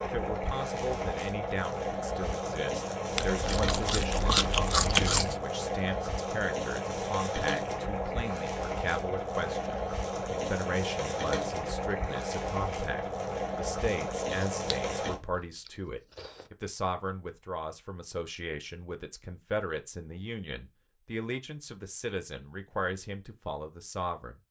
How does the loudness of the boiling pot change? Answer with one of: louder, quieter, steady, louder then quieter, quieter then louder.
steady.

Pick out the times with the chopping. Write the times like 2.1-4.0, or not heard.
not heard.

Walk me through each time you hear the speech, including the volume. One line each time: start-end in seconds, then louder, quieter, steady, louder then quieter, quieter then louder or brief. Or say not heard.
0.0-24.4 steady.